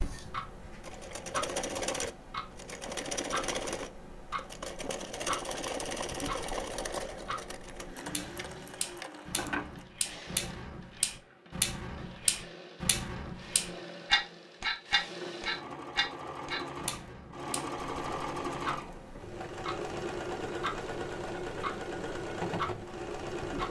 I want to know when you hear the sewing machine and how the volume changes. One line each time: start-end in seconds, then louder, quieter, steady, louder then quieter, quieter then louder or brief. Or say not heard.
0.0-23.6 quieter then louder.